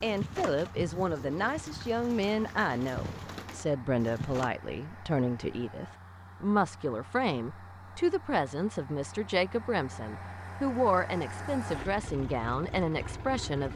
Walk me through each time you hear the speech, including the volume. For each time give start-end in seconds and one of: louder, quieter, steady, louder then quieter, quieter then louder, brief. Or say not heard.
0.0-13.7 steady.